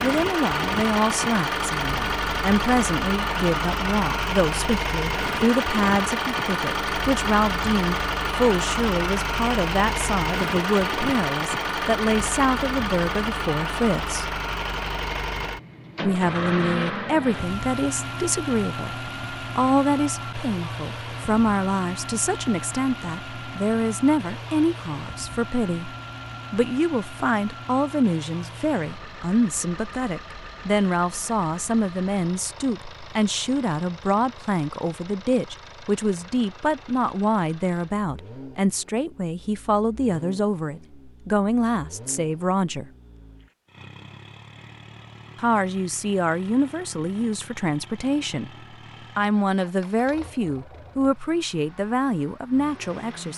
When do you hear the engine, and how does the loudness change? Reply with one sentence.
The engine can be heard from 0.0 to 53.3 s, getting quieter.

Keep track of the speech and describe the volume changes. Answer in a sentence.
The volume of the speech stays about the same.